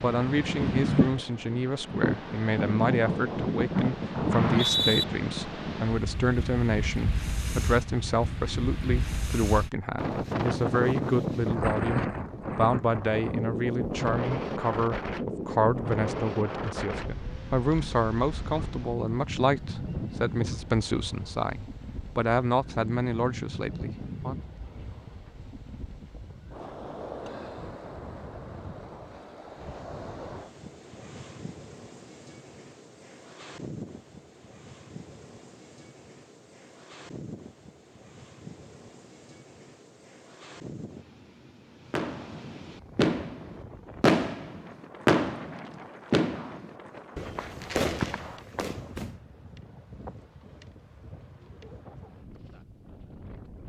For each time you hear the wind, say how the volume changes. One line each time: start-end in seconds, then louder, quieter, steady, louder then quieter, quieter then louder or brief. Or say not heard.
0.0-53.6 quieter.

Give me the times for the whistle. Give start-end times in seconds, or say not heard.
4.3-5.0.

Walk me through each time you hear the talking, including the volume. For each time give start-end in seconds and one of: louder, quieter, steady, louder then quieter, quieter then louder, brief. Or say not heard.
0.0-24.4 steady.